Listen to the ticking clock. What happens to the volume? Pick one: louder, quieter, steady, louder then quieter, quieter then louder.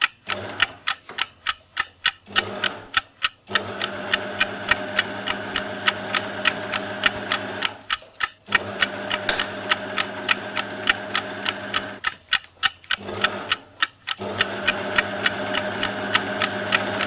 steady.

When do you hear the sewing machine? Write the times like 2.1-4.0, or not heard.
0.1-17.0.